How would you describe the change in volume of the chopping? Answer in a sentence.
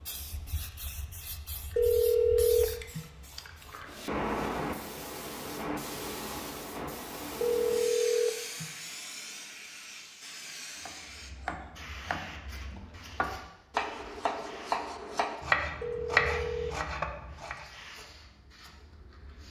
The volume of the chopping goes up.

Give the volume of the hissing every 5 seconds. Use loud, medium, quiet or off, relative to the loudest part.
loud, loud, medium, quiet.